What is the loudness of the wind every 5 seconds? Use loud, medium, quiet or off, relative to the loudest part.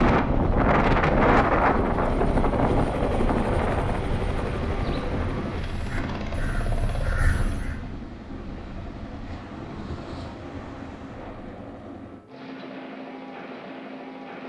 loud, quiet, quiet.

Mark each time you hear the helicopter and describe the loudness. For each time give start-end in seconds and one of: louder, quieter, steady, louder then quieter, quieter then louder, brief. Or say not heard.
0.1-14.4 quieter.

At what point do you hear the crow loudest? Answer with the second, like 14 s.
7 s.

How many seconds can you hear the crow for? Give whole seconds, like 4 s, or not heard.
2 s.